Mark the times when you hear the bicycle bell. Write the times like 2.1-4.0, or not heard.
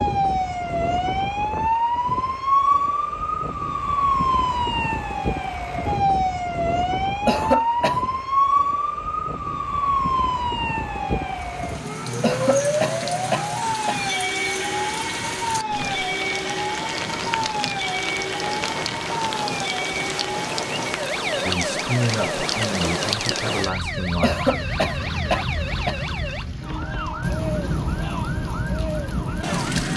not heard.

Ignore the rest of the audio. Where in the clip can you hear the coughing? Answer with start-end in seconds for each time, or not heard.
7.2-8.1, 12.2-14.0, 24.2-26.0.